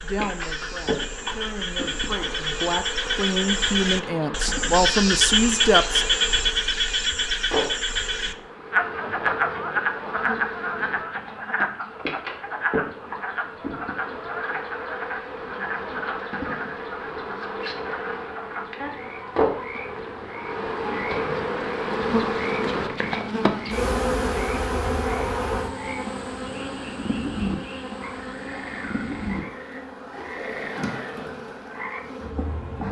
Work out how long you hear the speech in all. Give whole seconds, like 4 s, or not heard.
6 s.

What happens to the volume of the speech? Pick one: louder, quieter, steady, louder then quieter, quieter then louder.
louder.